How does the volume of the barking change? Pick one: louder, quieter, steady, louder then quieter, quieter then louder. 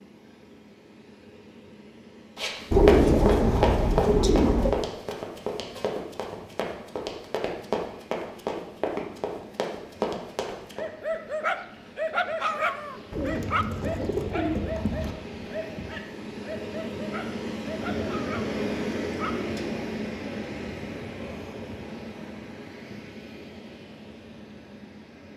quieter.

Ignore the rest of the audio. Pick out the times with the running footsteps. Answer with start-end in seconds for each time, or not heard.
2.4-10.8.